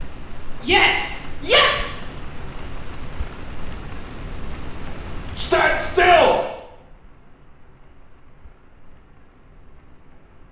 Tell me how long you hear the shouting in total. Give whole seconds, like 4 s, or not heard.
2 s.